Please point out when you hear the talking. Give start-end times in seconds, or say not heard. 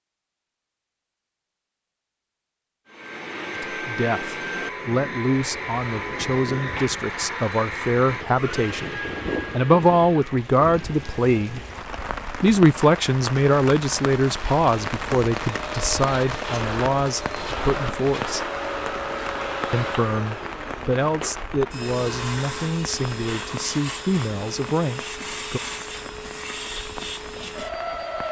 3.6-11.6, 12.4-18.4, 19.7-25.6.